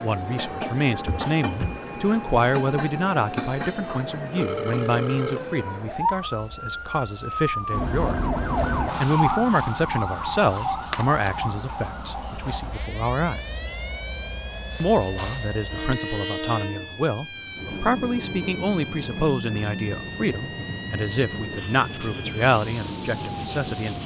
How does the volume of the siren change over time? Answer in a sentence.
The loudness of the siren goes up, then down.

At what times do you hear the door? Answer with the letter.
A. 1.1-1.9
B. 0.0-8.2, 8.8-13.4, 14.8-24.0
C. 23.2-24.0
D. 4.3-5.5
A.